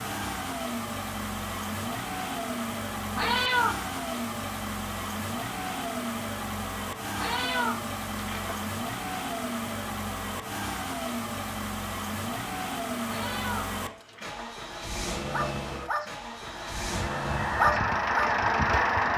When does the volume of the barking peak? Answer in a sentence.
The loudest moment of the barking is at 18 seconds.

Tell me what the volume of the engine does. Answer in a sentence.
The volume of the engine stays about the same.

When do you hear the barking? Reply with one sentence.
You can hear the barking from 15.3 to 16.1 s and from 17.6 to 18.4 s.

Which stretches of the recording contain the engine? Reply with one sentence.
The engine can be heard from 0.0 to 19.1 s.